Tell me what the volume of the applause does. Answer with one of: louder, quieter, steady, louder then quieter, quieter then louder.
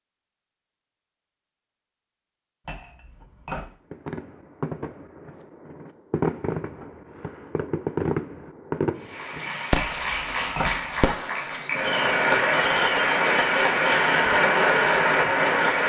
louder.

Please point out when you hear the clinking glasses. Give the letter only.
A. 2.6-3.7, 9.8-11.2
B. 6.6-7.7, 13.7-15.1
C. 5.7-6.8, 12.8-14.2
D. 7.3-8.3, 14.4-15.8
A.